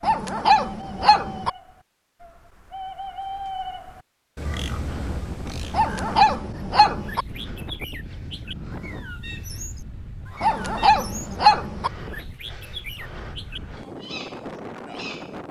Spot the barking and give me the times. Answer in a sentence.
You can hear the barking from 0.0 to 1.5 s, from 5.7 to 7.2 s and from 10.4 to 11.9 s.